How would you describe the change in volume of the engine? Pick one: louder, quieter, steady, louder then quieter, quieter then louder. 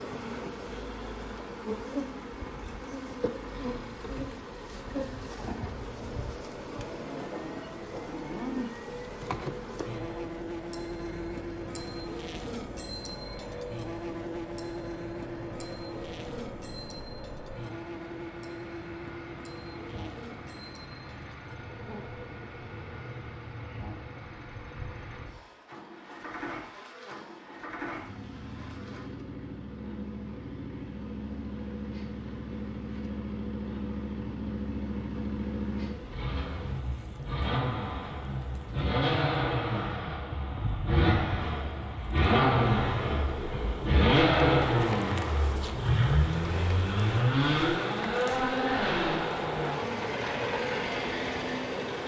louder.